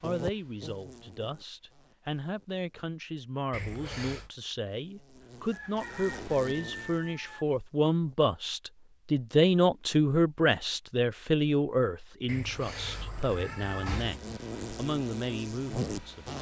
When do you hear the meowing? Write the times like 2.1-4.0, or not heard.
3.5-4.3, 12.2-14.2.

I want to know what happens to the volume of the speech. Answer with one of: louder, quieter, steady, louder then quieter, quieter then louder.
louder then quieter.